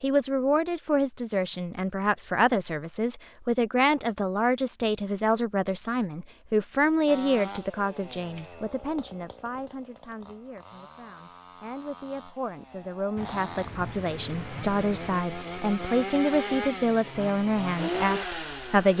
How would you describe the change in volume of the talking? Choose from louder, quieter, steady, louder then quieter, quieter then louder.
quieter then louder.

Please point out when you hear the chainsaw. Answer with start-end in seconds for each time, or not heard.
7.0-18.9.